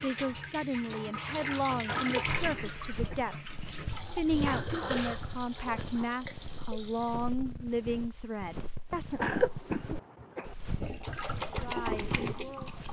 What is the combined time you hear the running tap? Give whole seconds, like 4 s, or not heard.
9 s.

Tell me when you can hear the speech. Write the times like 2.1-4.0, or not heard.
0.0-9.4, 11.4-12.8.